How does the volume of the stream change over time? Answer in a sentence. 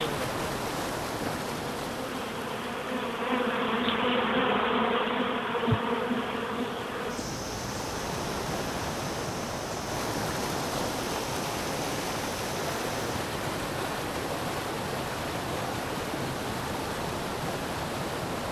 The volume of the stream goes down, then up.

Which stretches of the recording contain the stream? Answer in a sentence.
You can hear the stream from 0.0 to 18.4 s.